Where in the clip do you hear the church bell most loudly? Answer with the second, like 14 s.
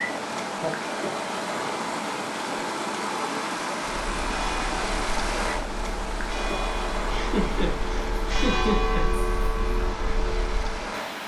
9 s.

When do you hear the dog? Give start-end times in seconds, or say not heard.
not heard.